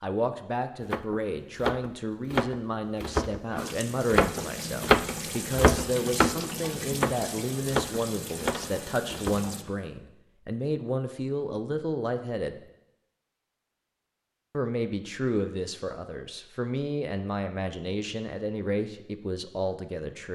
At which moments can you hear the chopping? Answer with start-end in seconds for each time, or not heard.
0.9-9.8.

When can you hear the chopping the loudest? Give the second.
5 s.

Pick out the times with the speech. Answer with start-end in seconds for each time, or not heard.
0.0-12.6, 14.5-20.3.